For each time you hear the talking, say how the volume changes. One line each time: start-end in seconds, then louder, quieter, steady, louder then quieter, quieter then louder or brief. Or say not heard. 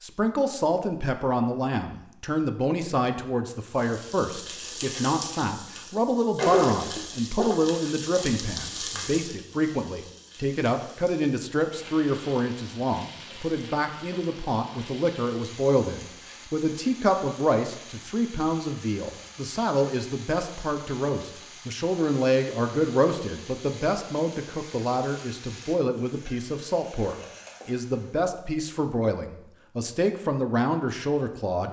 0.0-31.6 steady.